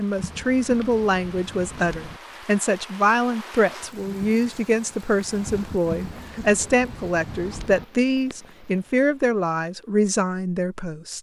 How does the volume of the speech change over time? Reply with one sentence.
The volume of the speech stays about the same.